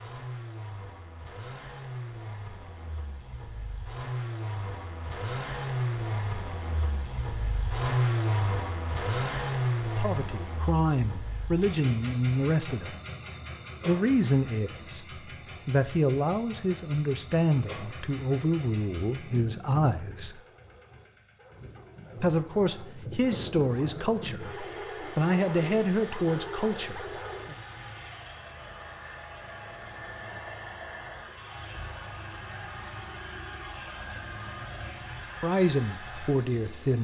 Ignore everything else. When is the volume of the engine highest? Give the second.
8 s.